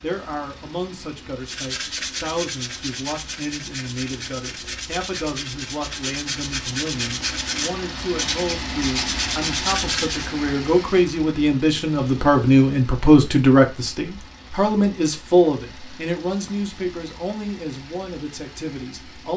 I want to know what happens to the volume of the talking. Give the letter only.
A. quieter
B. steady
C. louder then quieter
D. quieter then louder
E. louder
C.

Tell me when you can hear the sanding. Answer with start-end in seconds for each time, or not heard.
1.4-10.3.